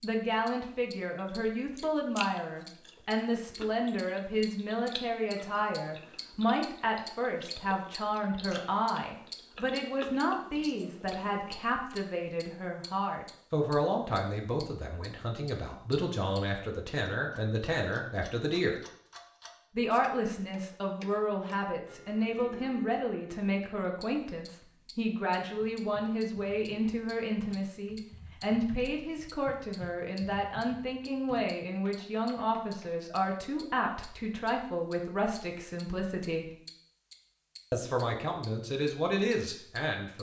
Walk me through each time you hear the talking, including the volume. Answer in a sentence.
The talking can be heard from 0.0 to 18.8 s, at a steady volume; from 19.8 to 36.5 s, at a steady volume; and briefly from 37.7 to 40.1 s.